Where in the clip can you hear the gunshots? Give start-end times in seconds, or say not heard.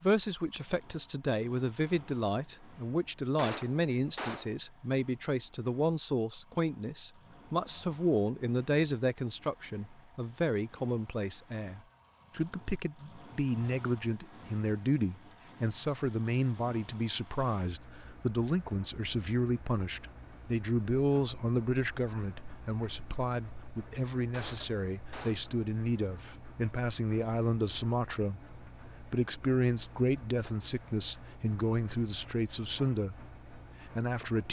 3.4-4.5, 24.3-25.5.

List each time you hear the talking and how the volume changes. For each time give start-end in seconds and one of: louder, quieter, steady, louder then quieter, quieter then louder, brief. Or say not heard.
0.0-34.4 steady.